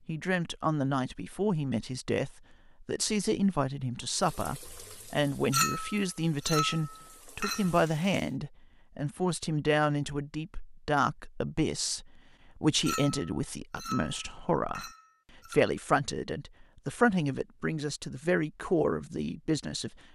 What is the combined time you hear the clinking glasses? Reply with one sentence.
You can hear the clinking glasses for 5 seconds altogether.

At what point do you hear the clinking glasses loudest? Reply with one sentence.
The loudest moment of the clinking glasses is at 6 seconds.